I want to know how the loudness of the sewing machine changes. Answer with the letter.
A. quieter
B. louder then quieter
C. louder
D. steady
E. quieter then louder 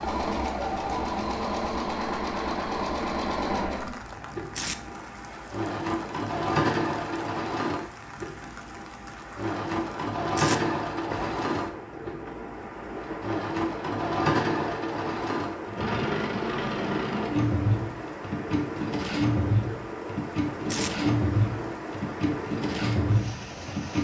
D.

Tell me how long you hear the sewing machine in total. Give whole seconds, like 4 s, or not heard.
24 s.